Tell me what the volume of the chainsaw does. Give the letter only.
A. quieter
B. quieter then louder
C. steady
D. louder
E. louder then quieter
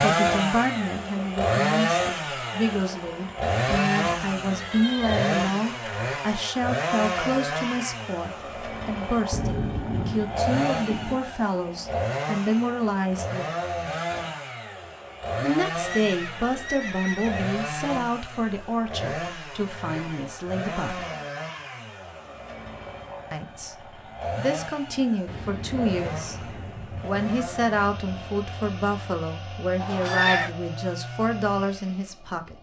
A.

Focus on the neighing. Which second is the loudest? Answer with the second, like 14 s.
30 s.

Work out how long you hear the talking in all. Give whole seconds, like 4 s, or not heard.
28 s.